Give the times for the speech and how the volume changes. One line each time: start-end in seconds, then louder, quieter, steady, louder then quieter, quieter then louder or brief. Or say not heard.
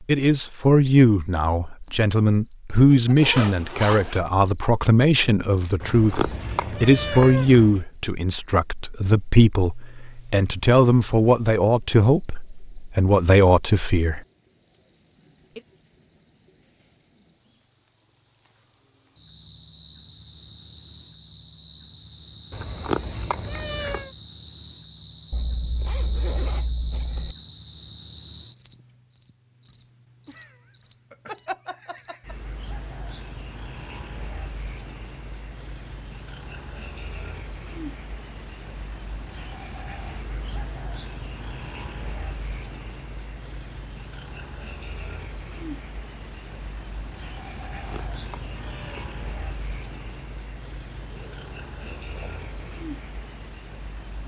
0.1-14.2 steady.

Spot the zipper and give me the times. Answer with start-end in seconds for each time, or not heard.
3.1-4.2, 25.3-27.4, 51.0-52.5.